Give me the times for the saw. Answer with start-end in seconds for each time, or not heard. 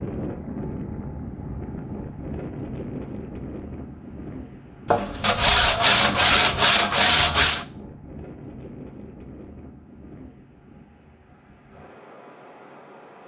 4.8-7.7.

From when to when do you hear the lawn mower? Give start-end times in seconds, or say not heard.
not heard.